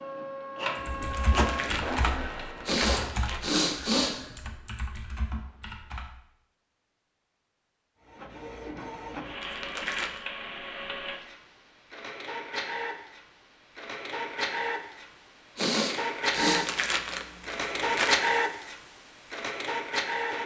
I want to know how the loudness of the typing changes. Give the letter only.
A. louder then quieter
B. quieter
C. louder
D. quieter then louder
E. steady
B.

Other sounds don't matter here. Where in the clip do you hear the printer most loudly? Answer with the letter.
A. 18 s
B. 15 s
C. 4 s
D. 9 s
A.